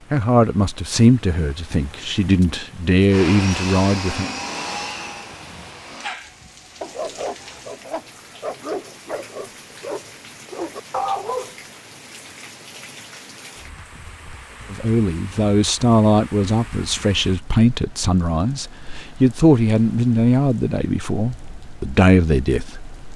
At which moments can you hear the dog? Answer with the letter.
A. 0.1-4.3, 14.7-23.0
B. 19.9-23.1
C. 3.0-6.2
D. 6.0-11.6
D.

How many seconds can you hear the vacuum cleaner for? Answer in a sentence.
You can hear the vacuum cleaner for 3 seconds altogether.